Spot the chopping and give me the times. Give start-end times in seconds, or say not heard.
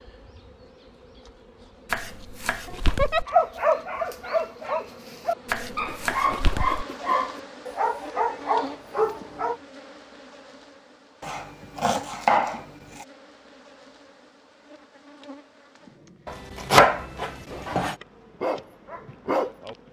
1.9-3.2, 5.5-6.8, 11.2-13.1, 16.2-17.9.